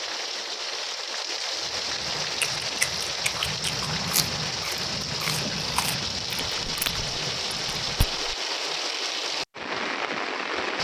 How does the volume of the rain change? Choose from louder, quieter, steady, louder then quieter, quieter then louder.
steady.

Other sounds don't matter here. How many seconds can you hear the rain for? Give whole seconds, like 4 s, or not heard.
11 s.